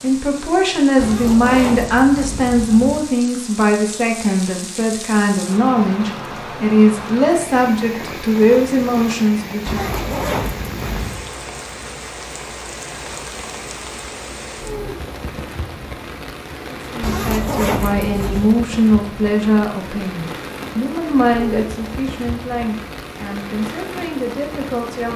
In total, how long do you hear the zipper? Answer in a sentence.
The zipper can be heard for 5 seconds in total.